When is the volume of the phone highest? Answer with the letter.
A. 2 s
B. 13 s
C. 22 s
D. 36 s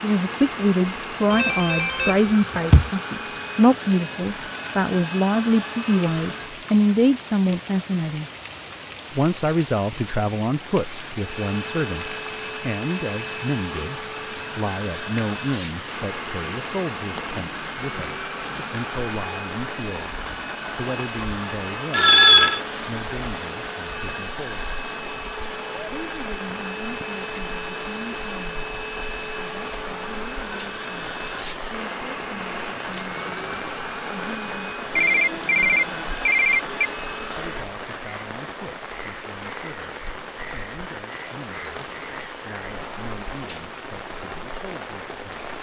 C.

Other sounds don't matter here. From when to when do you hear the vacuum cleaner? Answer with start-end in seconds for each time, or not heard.
0.0-6.6, 11.2-37.8.